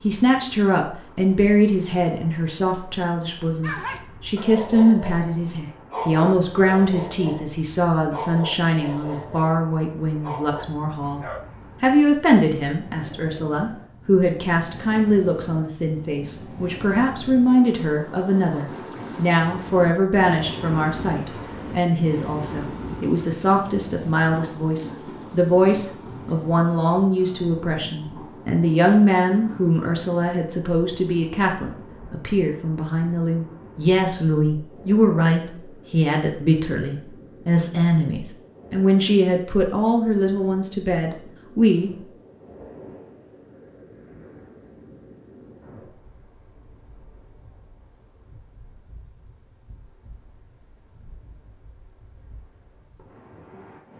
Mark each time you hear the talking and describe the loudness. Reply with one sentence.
You can hear the talking from 0.0 to 41.9 s, at a steady volume.